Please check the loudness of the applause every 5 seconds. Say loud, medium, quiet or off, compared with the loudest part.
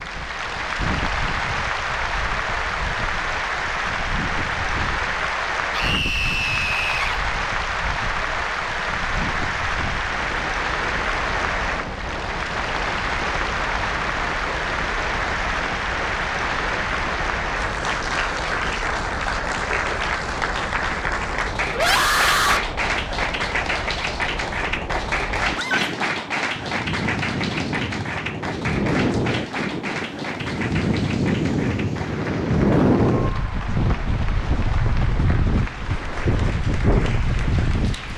loud, loud, loud, loud, loud, loud, medium, medium.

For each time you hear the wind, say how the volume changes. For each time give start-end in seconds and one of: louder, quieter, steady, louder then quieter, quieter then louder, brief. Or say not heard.
0.0-38.1 louder.